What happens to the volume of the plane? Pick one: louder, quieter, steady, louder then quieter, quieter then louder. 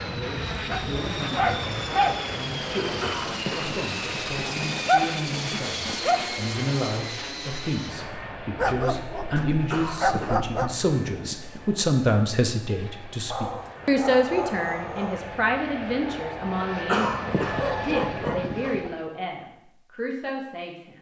quieter then louder.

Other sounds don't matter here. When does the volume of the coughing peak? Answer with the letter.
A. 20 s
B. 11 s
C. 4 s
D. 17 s
D.